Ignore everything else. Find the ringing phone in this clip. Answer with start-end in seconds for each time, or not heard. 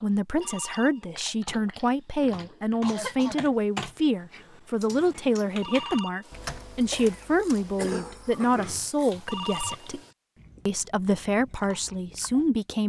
0.4-1.2, 5.6-6.3, 9.2-10.2.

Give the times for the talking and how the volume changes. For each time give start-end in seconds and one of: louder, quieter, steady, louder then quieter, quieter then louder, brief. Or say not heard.
0.0-10.0 steady
10.7-12.8 brief.